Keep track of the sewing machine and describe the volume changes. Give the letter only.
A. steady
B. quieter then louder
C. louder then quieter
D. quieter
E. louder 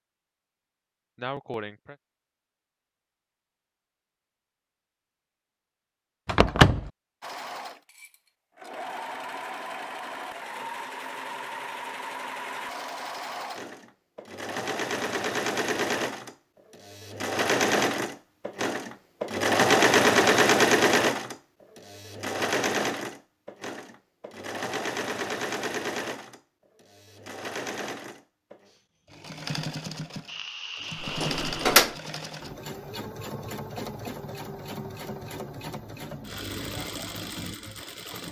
C.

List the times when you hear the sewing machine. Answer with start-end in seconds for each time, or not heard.
7.2-38.2.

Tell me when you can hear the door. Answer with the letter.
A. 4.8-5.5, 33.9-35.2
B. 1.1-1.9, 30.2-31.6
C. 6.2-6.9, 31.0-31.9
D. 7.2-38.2
C.